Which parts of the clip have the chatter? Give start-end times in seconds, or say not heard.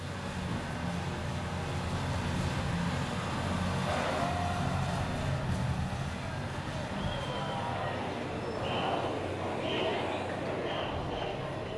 3.9-11.7.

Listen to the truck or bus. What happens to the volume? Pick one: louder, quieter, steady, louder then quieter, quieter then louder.
quieter.